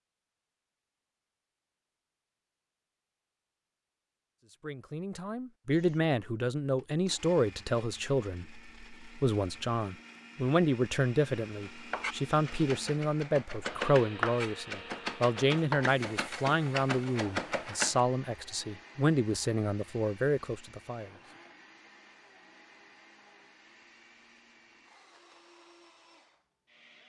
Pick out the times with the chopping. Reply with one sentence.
You can hear the chopping from 11.7 to 18.0 s.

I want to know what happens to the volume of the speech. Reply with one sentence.
The volume of the speech stays about the same.